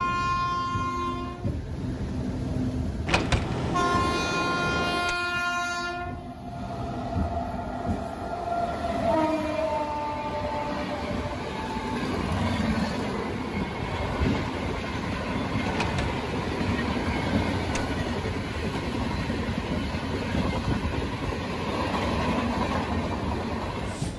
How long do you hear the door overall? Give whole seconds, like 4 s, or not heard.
4 s.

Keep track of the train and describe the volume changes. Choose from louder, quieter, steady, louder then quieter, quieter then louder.
steady.